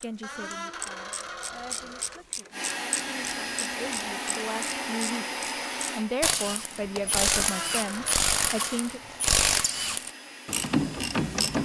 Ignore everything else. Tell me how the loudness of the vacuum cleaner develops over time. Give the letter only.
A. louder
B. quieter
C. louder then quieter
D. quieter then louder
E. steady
B.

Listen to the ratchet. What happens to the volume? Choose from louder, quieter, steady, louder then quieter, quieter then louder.
louder.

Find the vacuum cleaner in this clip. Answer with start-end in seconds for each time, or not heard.
2.5-11.6.